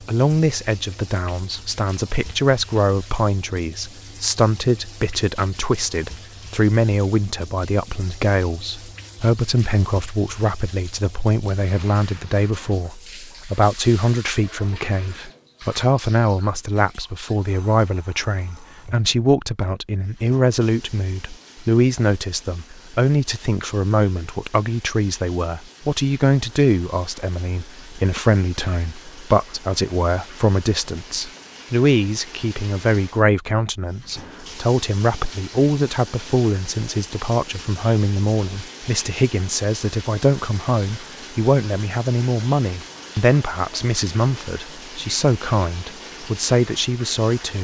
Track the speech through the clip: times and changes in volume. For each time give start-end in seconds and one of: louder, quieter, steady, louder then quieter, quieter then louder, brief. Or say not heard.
0.1-47.5 steady.